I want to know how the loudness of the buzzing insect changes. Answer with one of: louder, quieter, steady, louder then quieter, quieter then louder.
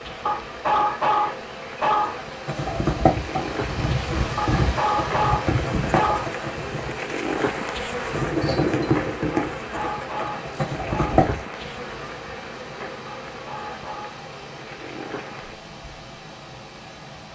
louder then quieter.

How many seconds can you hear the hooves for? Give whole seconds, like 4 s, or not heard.
9 s.